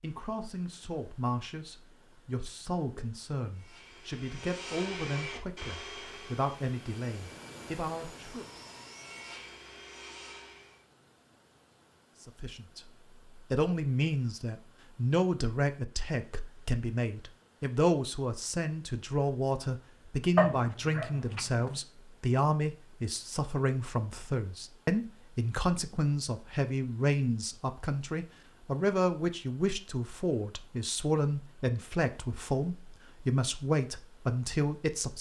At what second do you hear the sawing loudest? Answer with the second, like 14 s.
5 s.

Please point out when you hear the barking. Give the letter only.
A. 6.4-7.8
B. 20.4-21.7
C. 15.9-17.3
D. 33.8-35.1
B.